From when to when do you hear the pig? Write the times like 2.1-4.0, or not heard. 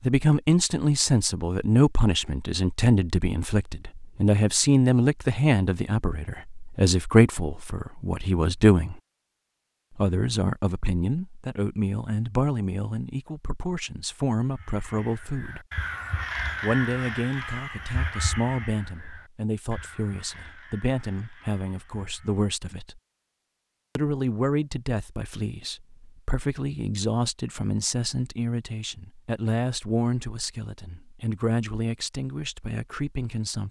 not heard.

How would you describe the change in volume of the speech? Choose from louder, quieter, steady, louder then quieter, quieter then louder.
quieter.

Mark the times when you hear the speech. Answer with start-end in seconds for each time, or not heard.
0.0-9.0, 9.9-15.7, 16.6-23.0, 23.9-33.6.